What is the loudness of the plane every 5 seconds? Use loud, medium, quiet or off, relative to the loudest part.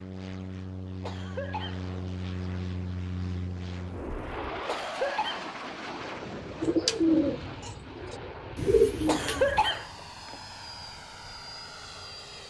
loud, loud, medium.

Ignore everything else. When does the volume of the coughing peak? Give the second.
10 s.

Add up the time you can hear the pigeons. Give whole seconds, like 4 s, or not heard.
3 s.